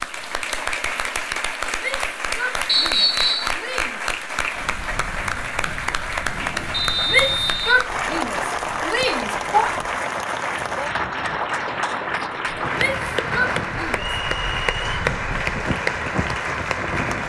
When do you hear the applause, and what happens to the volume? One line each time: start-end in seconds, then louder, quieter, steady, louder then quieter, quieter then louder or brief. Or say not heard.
0.0-17.2 steady.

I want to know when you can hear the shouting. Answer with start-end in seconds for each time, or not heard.
1.8-4.0, 7.0-9.7, 12.8-14.2.